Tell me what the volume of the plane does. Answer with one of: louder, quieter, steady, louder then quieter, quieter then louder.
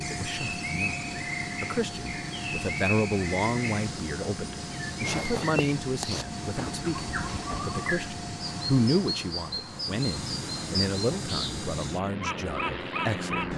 steady.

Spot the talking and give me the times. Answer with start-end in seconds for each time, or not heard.
0.0-0.9, 1.6-13.5.